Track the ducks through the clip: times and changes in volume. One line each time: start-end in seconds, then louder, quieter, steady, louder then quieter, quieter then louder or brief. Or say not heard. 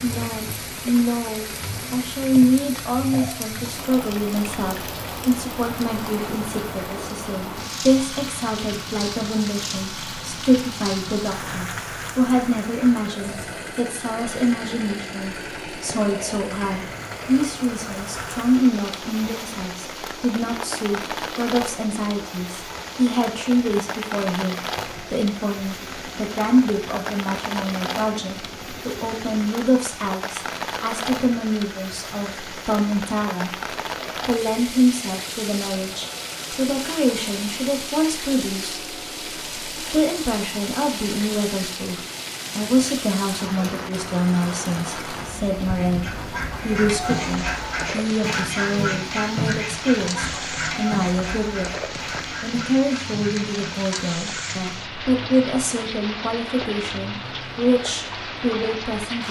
45.9-54.6 quieter.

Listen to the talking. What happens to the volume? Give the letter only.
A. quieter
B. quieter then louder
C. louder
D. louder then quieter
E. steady
E.